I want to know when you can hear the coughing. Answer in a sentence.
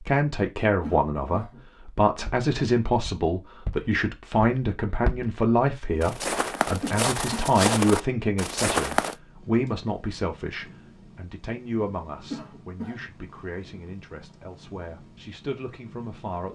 The coughing can be heard from 0.8 to 1.6 s, from 6.7 to 7.5 s and from 12.2 to 13.1 s.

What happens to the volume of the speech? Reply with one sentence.
The loudness of the speech goes down.